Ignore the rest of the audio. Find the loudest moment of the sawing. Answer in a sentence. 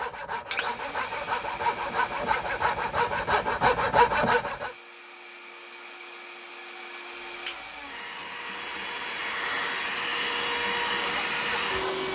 The loudest moment of the sawing is at 4 seconds.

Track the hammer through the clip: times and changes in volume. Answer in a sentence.
You can't hear the hammer here.